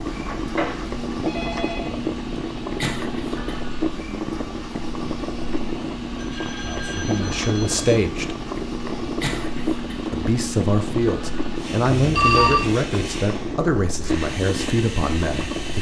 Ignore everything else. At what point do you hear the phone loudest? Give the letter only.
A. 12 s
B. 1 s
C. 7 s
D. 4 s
A.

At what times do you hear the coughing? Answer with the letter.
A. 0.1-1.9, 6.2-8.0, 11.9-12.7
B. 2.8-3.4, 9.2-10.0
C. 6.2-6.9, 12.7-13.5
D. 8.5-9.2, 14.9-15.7
B.